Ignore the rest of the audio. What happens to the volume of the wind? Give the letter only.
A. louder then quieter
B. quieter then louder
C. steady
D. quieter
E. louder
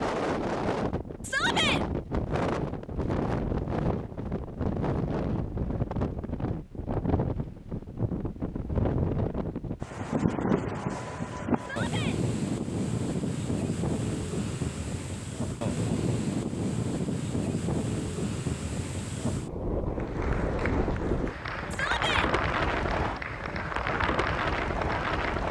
C.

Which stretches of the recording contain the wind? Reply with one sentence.
You can hear the wind from 0.0 to 25.4 s.